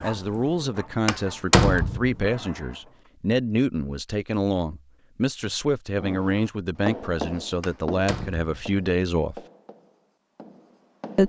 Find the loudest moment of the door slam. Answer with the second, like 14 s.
2 s.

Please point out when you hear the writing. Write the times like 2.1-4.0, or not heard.
6.0-11.2.